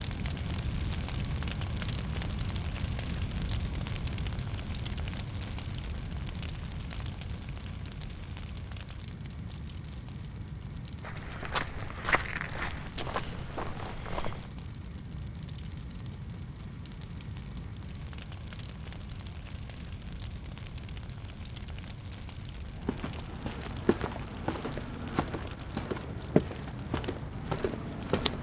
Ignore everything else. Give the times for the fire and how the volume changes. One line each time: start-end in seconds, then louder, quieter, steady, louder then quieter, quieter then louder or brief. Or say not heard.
0.0-28.3 quieter.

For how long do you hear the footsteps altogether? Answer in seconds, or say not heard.
9 s.